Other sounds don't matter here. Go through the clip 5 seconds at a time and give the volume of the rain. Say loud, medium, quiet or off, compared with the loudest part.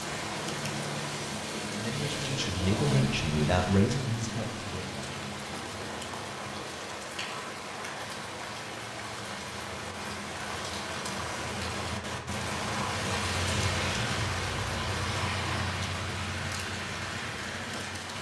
loud, medium, loud, loud.